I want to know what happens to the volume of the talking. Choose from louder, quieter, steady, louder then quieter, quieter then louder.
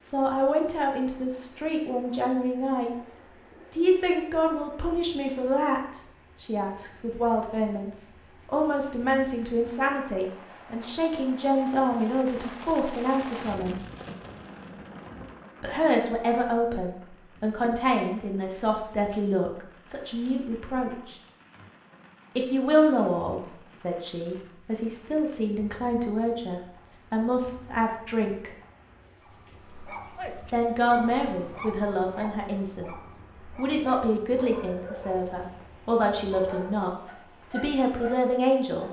steady.